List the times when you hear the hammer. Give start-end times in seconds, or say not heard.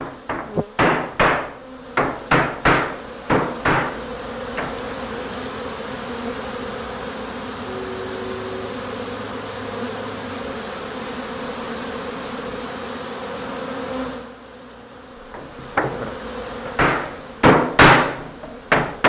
0.0-4.8, 15.3-19.0.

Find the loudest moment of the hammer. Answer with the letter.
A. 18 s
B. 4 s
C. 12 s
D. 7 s
A.